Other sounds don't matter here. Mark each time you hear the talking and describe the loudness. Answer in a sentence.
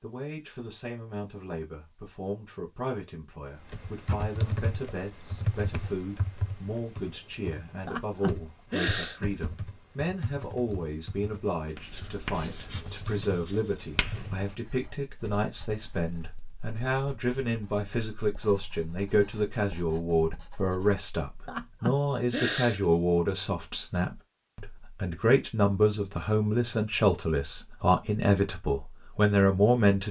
The talking can be heard from 0.0 to 30.0 s, getting louder.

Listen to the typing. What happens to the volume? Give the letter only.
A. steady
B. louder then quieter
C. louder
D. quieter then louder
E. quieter
E.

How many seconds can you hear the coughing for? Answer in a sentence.
The coughing can be heard for 3 seconds in total.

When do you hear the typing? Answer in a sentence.
The typing can be heard from 3.6 to 14.3 s.